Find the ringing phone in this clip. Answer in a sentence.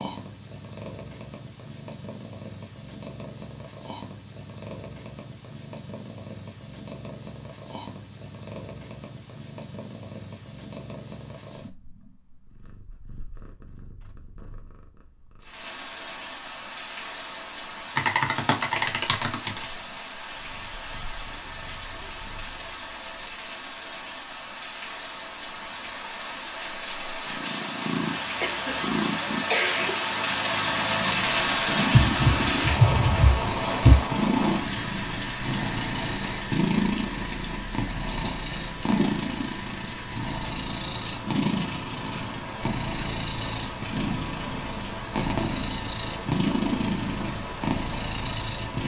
The ringing phone can't be heard in this clip.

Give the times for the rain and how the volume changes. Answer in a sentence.
You can hear the rain from 15.4 to 48.8 s, getting louder then quieter.